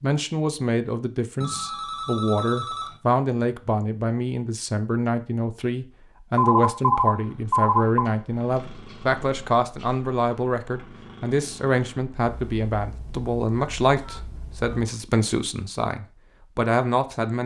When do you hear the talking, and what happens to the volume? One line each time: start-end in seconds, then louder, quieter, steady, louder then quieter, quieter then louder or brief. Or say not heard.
0.0-17.4 steady.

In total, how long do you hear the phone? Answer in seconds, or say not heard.
6 s.